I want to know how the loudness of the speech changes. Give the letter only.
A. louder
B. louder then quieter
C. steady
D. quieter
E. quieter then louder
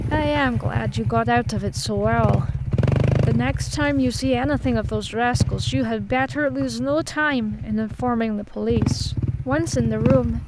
C.